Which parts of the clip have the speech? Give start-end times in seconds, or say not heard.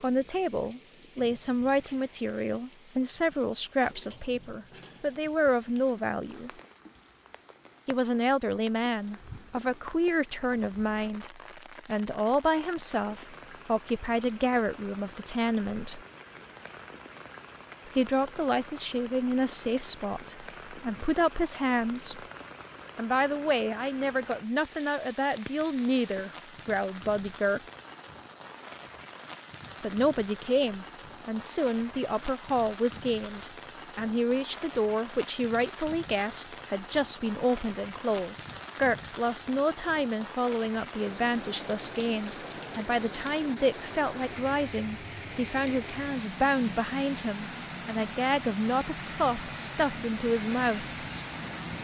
0.0-6.5, 7.8-16.0, 17.9-22.2, 22.9-27.6, 29.8-51.0.